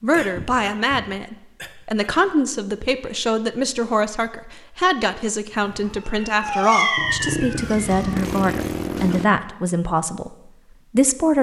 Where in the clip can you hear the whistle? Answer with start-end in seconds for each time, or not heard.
not heard.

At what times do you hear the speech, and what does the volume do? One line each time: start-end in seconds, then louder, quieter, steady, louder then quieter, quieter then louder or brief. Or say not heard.
0.0-11.3 steady.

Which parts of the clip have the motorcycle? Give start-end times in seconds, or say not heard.
7.0-9.3.